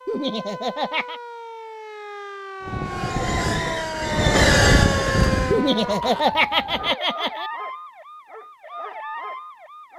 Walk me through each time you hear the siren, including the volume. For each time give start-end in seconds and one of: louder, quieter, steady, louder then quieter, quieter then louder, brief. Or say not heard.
0.0-9.9 louder then quieter.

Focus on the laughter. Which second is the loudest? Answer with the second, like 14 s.
6 s.